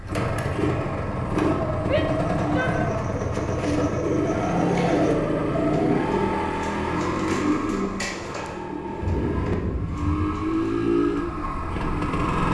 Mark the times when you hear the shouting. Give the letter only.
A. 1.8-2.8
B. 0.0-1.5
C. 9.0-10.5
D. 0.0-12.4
A.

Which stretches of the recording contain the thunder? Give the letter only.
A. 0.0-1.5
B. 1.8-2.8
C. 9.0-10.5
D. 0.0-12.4
C.